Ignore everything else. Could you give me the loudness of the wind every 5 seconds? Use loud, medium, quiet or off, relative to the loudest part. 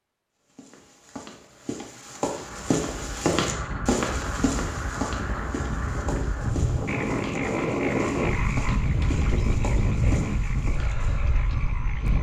medium, loud, loud.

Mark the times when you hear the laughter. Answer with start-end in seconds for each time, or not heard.
not heard.